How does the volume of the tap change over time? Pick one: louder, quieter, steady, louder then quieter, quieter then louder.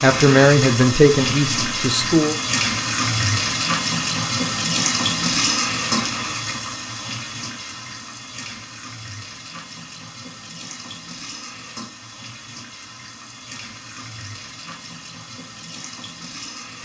quieter.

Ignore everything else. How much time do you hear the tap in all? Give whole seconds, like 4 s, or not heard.
17 s.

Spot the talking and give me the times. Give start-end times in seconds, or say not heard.
0.0-2.4.